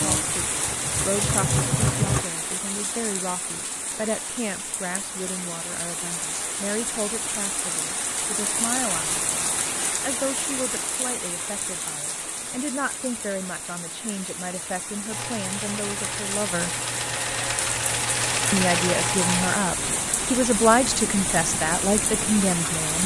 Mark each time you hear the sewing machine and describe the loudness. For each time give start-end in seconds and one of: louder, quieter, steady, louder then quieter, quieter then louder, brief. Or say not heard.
0.0-2.2 brief
15.1-19.6 louder.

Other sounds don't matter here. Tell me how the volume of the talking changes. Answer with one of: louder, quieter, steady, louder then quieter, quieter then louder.
louder.